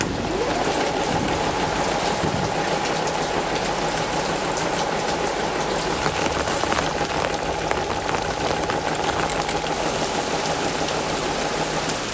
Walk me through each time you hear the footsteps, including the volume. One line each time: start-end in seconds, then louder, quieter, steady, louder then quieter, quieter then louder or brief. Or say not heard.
not heard.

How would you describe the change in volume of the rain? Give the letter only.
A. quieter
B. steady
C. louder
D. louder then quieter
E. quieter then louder
B.